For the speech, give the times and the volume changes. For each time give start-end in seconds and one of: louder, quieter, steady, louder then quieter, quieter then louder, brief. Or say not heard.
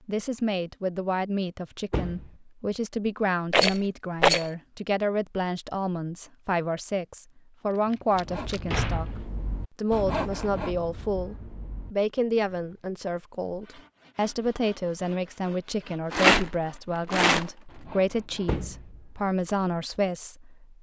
0.1-20.7 steady.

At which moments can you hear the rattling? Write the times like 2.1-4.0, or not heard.
3.5-4.5, 7.9-8.6, 16.1-17.5.